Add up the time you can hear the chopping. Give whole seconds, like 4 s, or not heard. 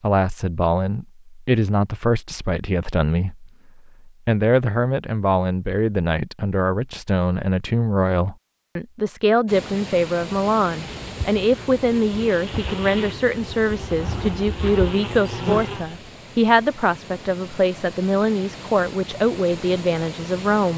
not heard.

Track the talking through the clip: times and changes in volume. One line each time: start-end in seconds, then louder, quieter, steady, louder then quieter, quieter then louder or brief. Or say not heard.
0.0-20.7 steady.